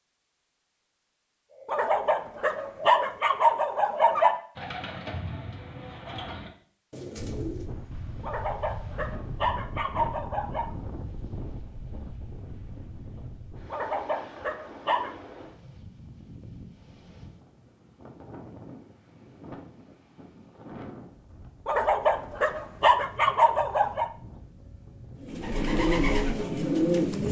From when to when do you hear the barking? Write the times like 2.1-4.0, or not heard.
1.6-4.3, 8.2-10.7, 13.7-15.1, 21.6-24.1.